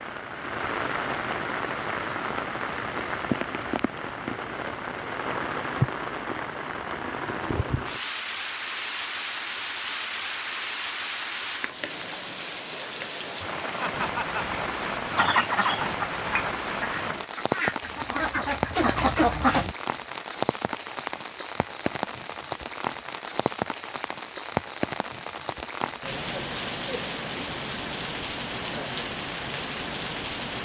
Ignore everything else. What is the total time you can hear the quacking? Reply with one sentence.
The quacking can be heard for 5 seconds in total.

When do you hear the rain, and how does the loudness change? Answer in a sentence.
The rain can be heard from 0.0 to 30.5 s, at a steady volume.